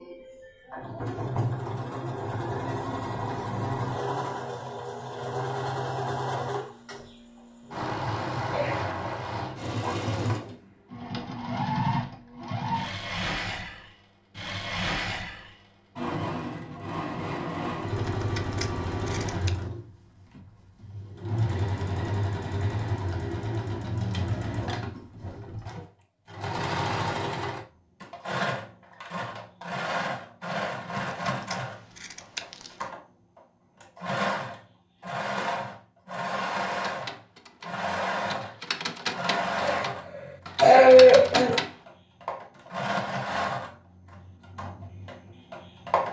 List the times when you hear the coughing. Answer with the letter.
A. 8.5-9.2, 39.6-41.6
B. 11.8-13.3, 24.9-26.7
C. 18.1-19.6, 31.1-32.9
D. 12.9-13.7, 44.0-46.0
A.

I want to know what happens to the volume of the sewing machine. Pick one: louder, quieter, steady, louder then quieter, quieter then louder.
steady.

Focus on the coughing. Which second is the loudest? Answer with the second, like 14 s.
41 s.